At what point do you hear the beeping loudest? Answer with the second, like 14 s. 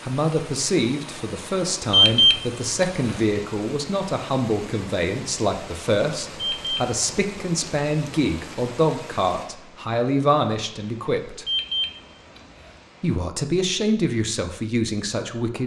2 s.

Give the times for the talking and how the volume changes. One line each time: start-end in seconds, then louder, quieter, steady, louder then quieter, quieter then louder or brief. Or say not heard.
0.0-11.4 steady
13.0-15.6 brief.